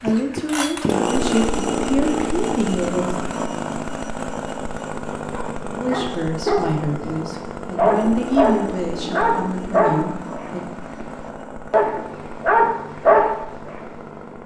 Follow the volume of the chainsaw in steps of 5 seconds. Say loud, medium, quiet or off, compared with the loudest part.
loud, medium, medium.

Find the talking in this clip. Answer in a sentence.
The talking can be heard from 0.0 to 3.1 s and from 5.8 to 10.7 s.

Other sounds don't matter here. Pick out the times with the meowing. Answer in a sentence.
You can't hear the meowing here.